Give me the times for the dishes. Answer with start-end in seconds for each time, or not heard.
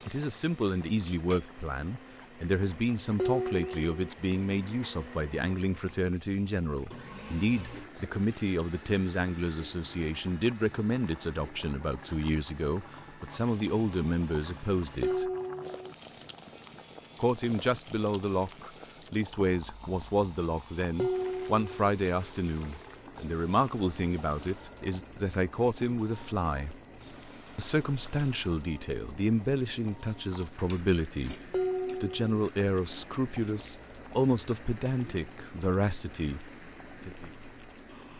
3.1-4.1, 15.0-15.9, 20.9-21.9, 31.5-32.2.